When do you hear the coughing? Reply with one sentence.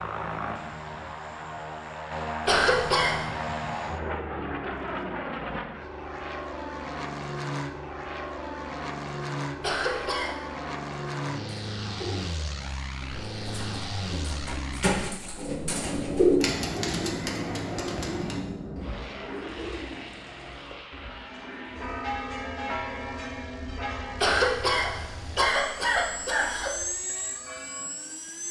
The coughing can be heard from 2.5 to 3.2 s, from 9.6 to 10.3 s and from 24.2 to 26.9 s.